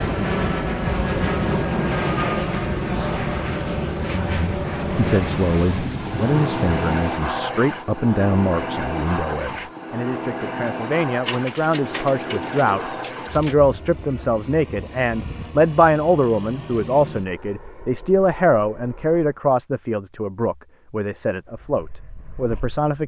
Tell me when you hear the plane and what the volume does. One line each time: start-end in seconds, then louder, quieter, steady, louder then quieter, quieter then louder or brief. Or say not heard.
0.0-19.2 quieter
21.4-22.8 brief.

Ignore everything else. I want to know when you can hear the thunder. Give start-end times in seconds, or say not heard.
5.2-7.2.